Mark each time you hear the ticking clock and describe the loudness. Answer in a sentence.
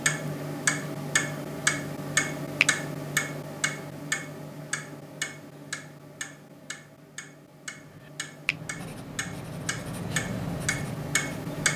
The ticking clock can be heard from 0.0 to 11.7 s, getting quieter then louder.